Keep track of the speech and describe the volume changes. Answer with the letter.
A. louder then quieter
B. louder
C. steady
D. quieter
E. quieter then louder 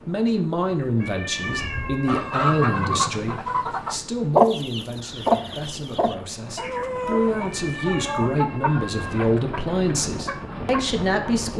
E.